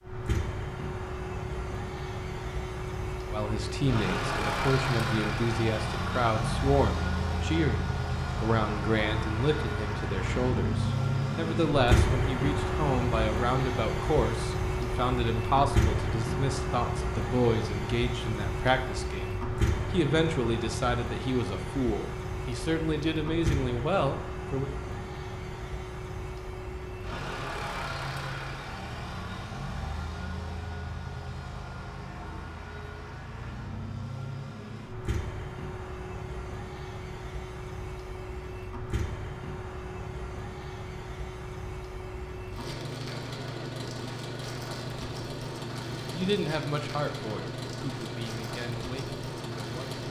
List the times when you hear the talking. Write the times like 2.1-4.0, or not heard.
3.3-24.7, 46.1-50.0.